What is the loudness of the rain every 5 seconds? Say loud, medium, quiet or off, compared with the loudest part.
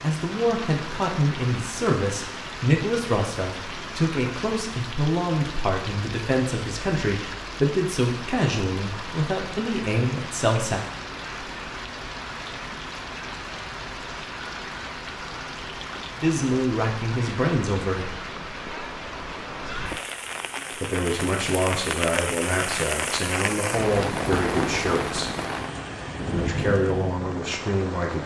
medium, medium, medium, medium, loud, loud.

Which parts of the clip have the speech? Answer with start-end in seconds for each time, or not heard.
0.0-10.8, 16.2-18.2, 20.7-25.3, 26.3-28.2.